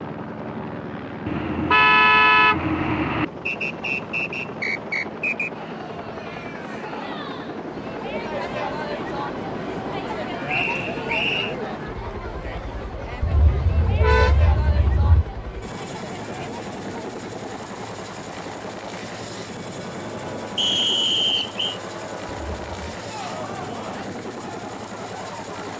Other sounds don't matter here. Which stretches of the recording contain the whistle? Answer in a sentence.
You can hear the whistle from 3.5 to 5.5 s, from 10.4 to 11.6 s and from 20.6 to 21.8 s.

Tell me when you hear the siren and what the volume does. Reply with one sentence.
The siren can't be heard in this clip.